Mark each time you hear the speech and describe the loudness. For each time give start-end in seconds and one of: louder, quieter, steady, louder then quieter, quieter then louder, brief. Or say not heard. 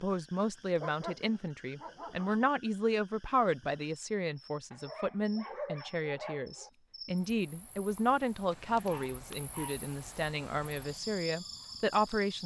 0.0-12.4 steady.